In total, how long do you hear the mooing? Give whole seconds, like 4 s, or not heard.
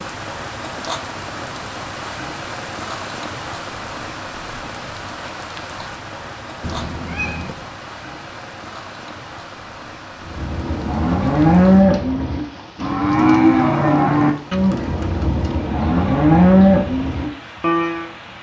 8 s.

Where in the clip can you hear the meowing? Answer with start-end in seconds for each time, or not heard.
6.6-7.7.